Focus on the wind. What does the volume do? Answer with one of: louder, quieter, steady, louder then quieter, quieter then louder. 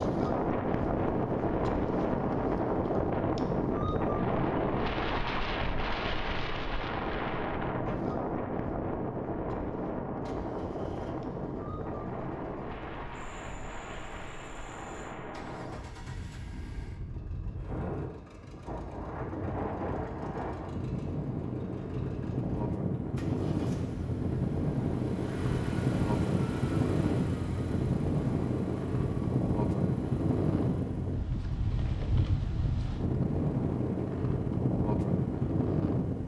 quieter then louder.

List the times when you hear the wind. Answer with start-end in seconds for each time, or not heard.
0.0-36.2.